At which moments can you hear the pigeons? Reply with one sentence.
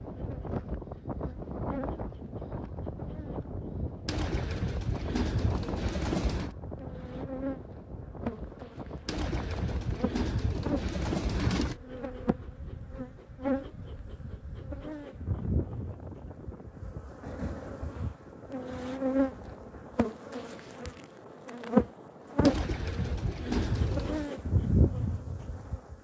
You can hear the pigeons from 4.0 to 6.5 s, from 9.1 to 11.8 s and from 22.4 to 24.3 s.